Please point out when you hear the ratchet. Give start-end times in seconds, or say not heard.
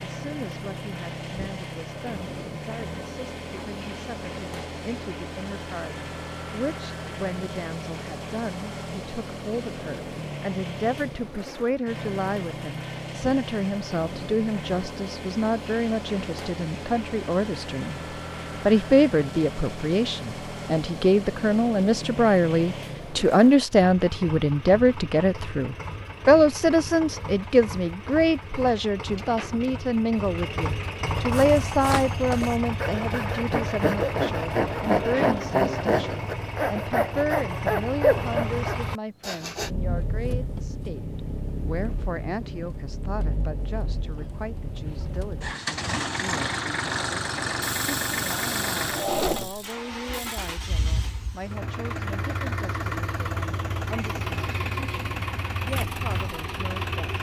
47.6-50.5.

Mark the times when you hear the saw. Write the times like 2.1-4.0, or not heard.
31.3-39.7.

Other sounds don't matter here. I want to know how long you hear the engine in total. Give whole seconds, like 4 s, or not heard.
57 s.